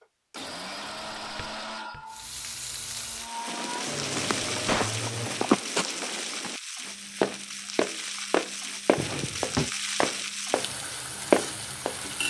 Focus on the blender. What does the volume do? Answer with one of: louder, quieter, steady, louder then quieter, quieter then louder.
quieter then louder.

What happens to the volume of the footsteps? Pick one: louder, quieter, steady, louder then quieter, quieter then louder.
louder.